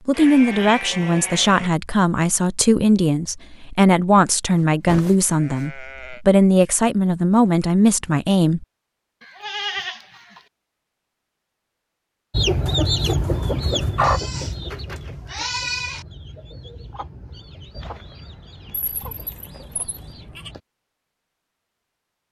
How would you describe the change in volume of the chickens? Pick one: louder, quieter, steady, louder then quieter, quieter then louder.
quieter.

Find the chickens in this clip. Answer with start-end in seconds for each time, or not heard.
12.3-20.6.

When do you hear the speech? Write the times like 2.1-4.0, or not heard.
0.1-8.7.